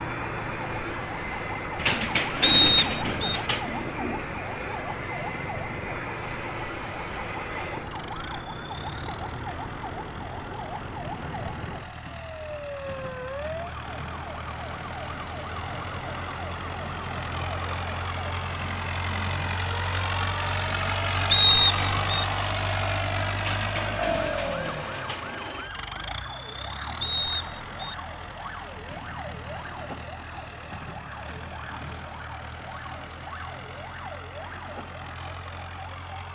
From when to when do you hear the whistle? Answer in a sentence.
The whistle can be heard from 2.4 to 3.4 s, from 21.3 to 22.2 s and from 27.0 to 27.9 s.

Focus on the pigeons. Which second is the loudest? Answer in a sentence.
The volume of the pigeons peaks at 2 seconds.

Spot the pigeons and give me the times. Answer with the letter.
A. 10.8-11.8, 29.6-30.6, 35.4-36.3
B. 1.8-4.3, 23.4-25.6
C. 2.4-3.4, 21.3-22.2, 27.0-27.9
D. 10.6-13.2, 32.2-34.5
B.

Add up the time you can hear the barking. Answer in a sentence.
You can't hear the barking here.